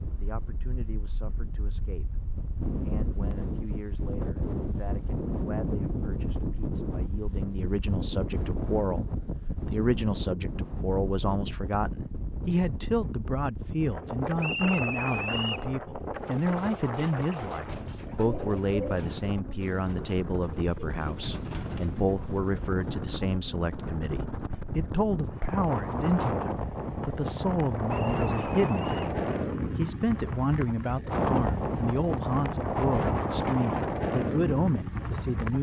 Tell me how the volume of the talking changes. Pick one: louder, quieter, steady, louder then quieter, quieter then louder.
louder.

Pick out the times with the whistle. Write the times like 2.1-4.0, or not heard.
14.4-15.7, 27.9-29.1.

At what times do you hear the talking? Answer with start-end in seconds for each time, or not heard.
0.1-35.5.